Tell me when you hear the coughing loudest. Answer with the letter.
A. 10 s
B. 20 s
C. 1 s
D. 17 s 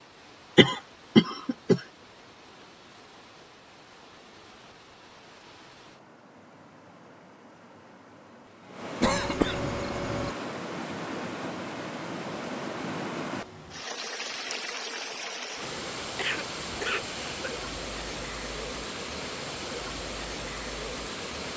C.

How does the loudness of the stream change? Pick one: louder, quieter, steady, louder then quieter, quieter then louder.
louder.